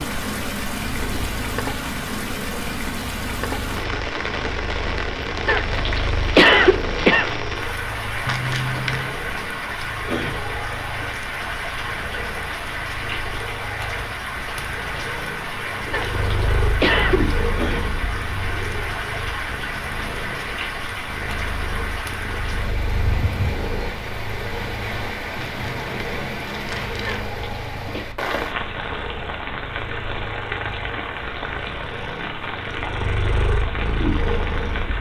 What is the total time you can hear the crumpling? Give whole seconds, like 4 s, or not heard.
3 s.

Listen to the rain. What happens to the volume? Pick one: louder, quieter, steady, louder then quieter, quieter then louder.
steady.